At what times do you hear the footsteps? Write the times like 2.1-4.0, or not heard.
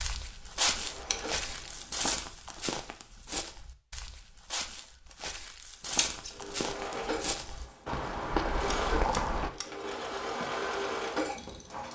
0.0-9.5.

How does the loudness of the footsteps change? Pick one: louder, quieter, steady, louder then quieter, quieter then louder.
quieter then louder.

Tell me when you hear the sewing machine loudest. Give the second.
11 s.